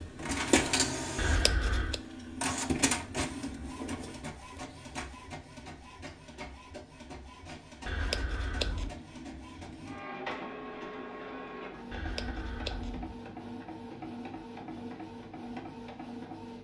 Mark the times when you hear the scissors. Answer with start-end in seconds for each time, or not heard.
1.1-2.0, 7.8-8.9, 11.9-13.1.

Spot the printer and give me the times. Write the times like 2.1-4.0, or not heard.
0.0-16.5.